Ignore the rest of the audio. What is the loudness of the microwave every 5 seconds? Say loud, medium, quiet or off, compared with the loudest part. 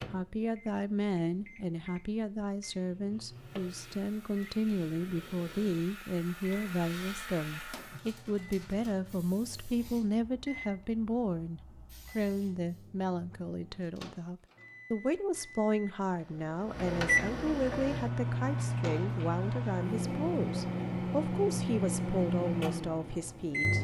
quiet, quiet, quiet, loud, loud.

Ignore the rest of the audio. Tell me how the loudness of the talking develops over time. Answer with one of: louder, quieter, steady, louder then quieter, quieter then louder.
steady.